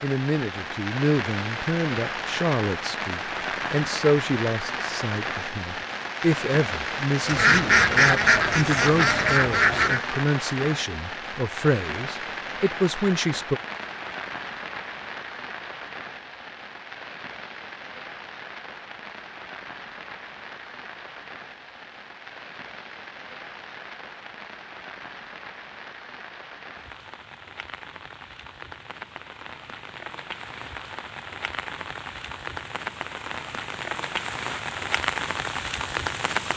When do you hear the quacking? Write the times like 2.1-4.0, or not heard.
7.2-10.0.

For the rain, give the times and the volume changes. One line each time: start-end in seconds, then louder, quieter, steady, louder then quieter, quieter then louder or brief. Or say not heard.
0.0-36.5 quieter then louder.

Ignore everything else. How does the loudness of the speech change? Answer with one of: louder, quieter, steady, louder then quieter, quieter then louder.
steady.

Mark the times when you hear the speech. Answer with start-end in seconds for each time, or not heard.
0.0-13.6.